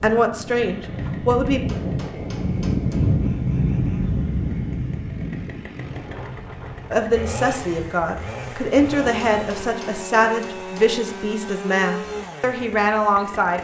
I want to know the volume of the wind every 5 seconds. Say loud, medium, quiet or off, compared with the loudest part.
loud, medium, off.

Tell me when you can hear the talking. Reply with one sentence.
You can hear the talking from 0.0 to 1.6 s and from 6.9 to 13.5 s.